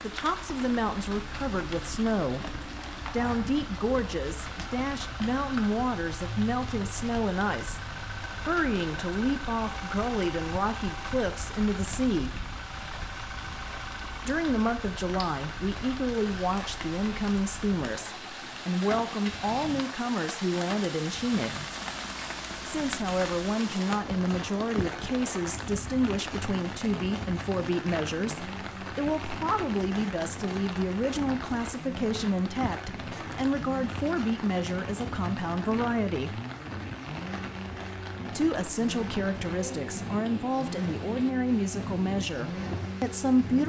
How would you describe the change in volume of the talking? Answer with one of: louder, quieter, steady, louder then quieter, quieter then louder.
steady.